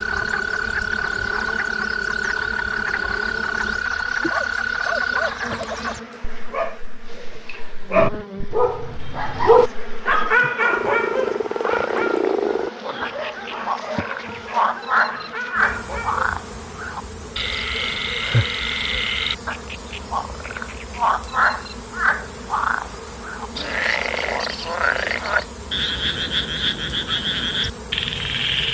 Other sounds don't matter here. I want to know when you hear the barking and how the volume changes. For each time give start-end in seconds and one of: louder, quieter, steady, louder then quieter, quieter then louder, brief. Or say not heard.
4.2-16.3 louder then quieter.